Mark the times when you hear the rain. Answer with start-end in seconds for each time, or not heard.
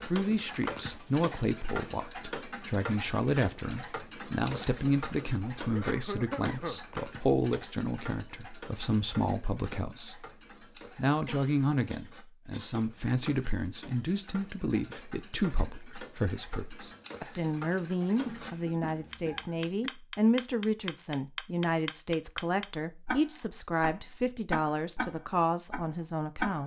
not heard.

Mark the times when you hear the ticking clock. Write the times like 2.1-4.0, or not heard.
0.0-26.6.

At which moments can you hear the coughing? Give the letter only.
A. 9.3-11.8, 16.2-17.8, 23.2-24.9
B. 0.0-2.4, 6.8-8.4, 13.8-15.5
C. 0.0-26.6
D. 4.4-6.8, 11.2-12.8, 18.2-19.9
D.